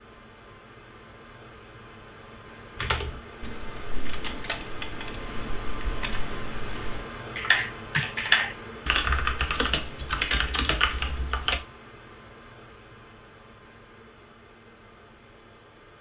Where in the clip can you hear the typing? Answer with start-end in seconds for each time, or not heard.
2.8-11.6.